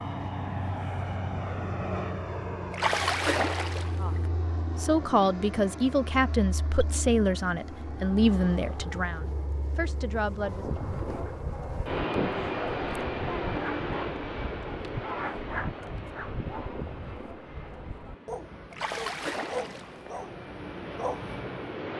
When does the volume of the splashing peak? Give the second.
3 s.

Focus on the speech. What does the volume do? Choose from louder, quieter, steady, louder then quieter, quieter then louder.
quieter.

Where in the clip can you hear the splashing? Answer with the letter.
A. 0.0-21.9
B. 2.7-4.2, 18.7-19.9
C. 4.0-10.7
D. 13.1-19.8
B.